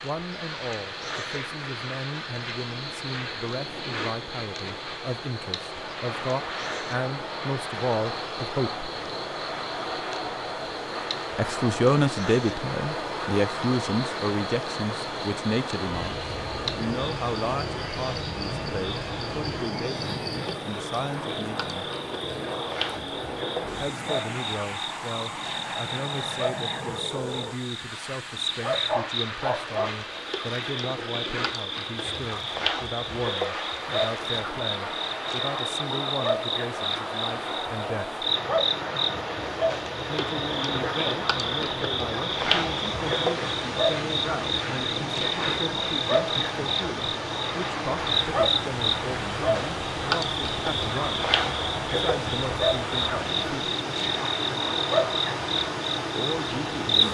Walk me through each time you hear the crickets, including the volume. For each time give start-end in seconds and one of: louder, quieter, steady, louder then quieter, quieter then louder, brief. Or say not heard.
0.0-57.0 louder.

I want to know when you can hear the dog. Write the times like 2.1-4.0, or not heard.
28.7-29.9.